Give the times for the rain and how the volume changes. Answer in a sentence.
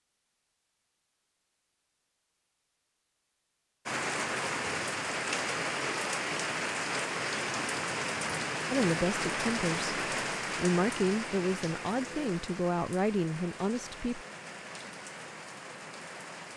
The rain can be heard from 3.9 to 16.5 s, getting quieter.